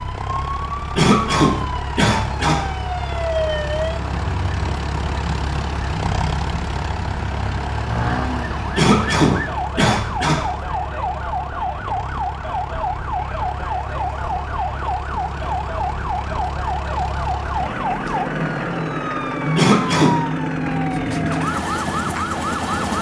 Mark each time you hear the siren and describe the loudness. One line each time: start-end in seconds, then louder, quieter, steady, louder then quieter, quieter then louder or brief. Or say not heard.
0.0-22.9 steady.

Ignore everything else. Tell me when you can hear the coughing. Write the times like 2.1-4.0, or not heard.
0.9-2.6, 8.8-10.4, 19.6-20.1.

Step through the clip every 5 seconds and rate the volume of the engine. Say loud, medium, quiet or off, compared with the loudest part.
medium, medium, medium, loud, loud.